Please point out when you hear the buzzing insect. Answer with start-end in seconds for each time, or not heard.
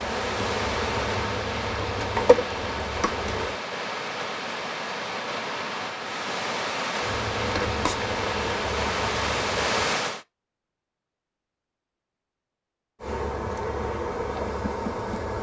0.0-3.6, 7.0-9.8, 13.0-15.3.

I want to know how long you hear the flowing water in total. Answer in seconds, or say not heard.
10 s.